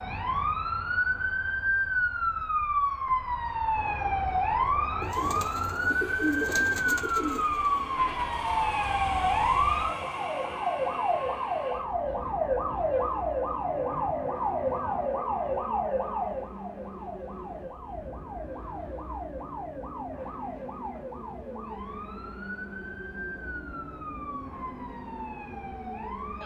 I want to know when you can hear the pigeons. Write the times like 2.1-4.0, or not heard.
5.0-7.9.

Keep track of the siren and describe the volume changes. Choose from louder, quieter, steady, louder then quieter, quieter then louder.
quieter.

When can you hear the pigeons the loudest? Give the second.
6 s.